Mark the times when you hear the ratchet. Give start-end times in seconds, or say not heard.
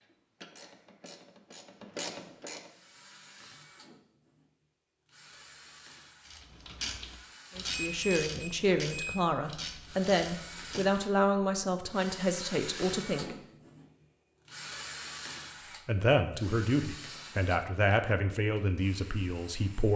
0.0-2.7, 6.2-11.0.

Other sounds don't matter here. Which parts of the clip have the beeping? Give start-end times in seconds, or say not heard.
7.7-9.2.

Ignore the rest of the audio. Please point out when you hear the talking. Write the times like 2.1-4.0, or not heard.
7.5-13.3, 15.8-19.9.